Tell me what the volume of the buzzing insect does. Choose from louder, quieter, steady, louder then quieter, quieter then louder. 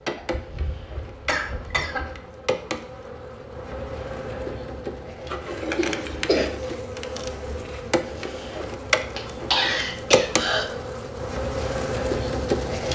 louder.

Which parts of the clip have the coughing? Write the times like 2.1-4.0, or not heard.
0.1-2.1, 5.8-6.5, 9.2-10.7.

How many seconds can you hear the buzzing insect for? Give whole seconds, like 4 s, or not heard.
13 s.